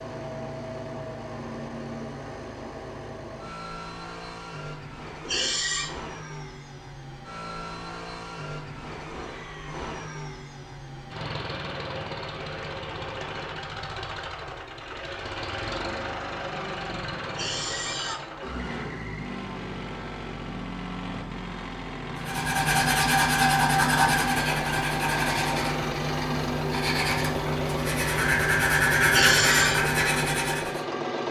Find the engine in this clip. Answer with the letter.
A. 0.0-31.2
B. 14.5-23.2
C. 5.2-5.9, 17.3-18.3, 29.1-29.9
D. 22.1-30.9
A.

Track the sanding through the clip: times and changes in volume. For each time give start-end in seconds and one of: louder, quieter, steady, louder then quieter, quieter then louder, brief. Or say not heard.
22.1-30.9 quieter then louder.